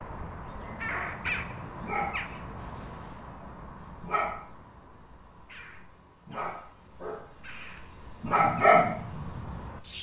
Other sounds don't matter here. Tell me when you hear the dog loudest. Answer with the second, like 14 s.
9 s.